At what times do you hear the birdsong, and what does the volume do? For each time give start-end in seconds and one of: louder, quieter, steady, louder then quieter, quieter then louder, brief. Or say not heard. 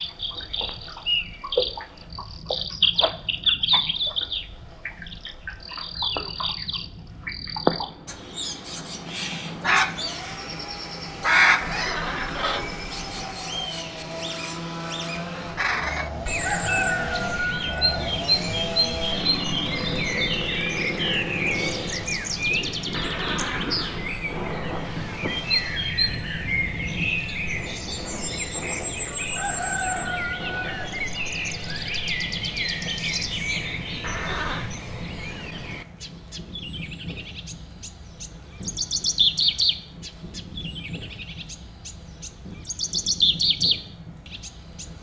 0.0-44.9 steady.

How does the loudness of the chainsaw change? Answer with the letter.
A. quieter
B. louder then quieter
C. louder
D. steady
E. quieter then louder
C.